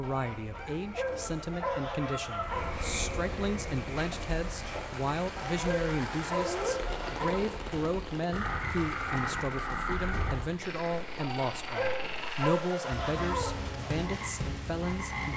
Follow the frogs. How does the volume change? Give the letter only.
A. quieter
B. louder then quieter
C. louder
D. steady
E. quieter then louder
C.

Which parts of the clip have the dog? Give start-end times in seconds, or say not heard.
0.9-2.7, 5.6-7.5, 11.8-13.6.